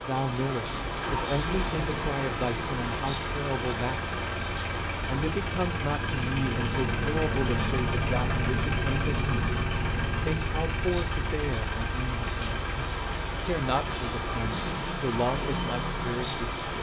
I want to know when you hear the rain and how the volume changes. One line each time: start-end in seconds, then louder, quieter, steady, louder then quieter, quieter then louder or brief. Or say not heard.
0.0-16.7 quieter then louder.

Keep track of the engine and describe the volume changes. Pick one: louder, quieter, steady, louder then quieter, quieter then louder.
louder then quieter.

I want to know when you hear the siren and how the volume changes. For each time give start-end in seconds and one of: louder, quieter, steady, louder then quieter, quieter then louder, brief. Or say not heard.
not heard.